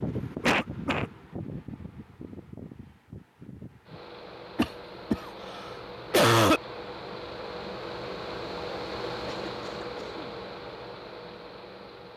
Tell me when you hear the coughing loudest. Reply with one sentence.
The loudest moment of the coughing is at 6 seconds.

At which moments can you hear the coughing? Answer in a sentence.
You can hear the coughing from 0.4 to 1.1 s, from 4.5 to 6.6 s and from 9.2 to 10.3 s.